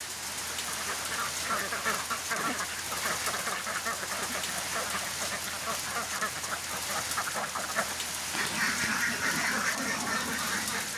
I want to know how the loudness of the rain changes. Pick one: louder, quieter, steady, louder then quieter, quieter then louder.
steady.